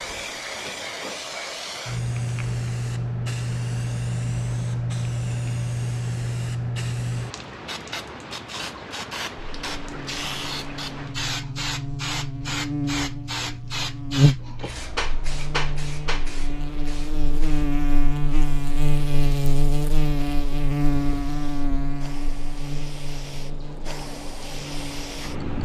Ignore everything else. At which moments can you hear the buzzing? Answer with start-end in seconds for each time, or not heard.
9.4-25.4.